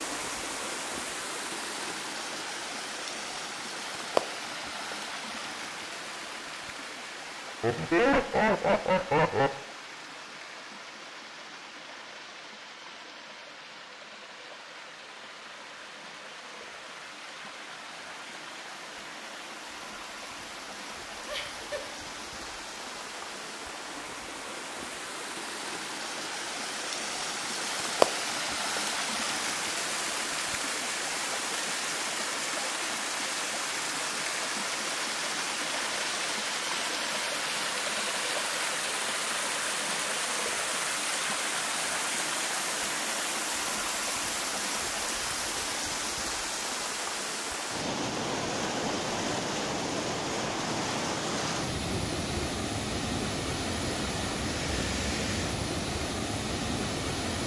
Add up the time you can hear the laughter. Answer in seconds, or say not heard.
3 s.